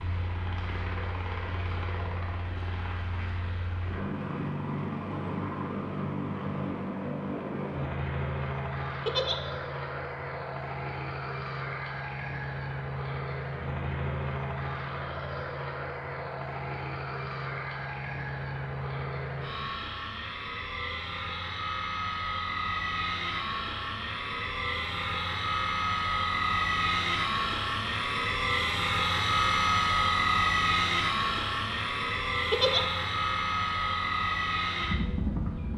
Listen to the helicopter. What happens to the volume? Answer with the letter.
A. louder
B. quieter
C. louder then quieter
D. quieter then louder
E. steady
A.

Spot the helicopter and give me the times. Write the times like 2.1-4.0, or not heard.
0.0-35.7.